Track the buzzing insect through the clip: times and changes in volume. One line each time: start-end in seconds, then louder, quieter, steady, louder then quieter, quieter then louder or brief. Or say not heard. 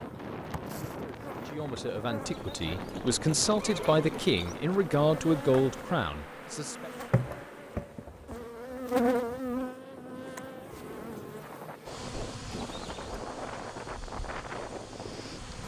0.0-15.6 louder then quieter.